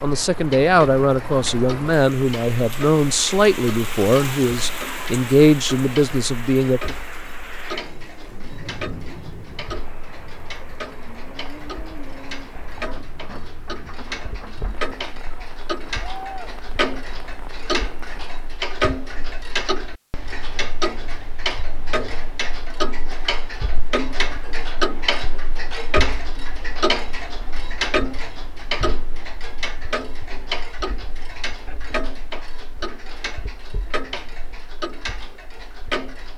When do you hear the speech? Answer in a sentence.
The speech can be heard from 0.0 to 7.0 s.